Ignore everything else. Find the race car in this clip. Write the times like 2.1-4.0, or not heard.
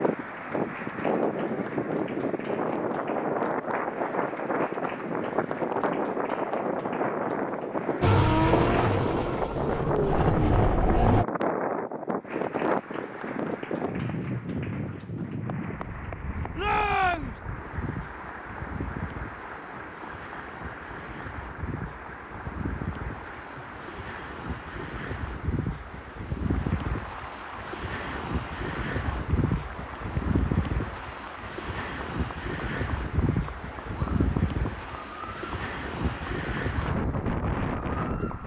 8.0-11.2.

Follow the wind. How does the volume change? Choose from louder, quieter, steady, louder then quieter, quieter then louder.
quieter then louder.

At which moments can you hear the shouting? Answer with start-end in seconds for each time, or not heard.
16.6-17.4.